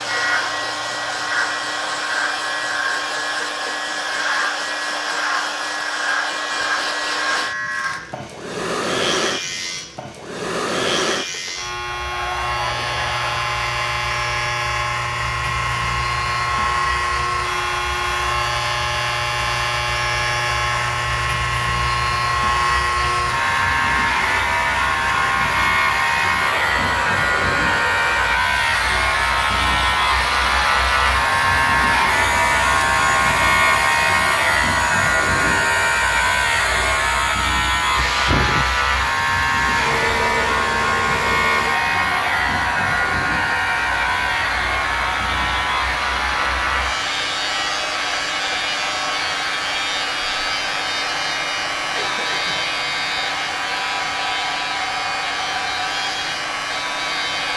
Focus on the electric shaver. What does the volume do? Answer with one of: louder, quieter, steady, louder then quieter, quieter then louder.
louder then quieter.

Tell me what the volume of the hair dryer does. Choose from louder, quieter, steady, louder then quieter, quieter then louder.
steady.